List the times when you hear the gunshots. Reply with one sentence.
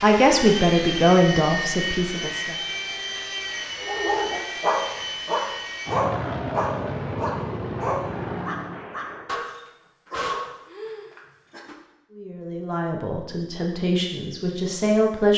The gunshots can be heard from 7.7 to 9.2 s.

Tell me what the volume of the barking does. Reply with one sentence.
The volume of the barking goes down.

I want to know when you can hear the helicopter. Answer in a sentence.
The helicopter can be heard from 0.0 to 8.9 s.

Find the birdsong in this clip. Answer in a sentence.
The birdsong can't be heard in this clip.